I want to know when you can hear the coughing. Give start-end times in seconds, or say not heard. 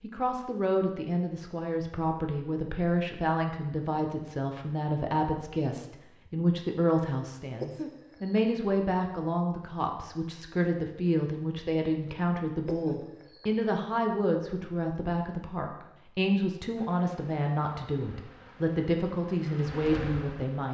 7.6-8.5, 12.7-13.5.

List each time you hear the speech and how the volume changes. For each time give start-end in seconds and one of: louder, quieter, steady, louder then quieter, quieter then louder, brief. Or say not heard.
0.0-20.6 steady.